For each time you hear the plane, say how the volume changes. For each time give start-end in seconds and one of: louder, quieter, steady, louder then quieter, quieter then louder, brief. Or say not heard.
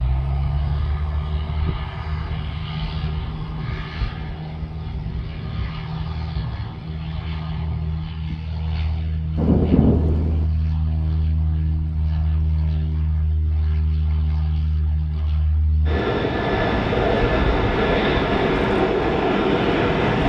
0.0-20.2 louder.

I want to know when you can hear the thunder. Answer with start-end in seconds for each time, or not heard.
9.3-10.4.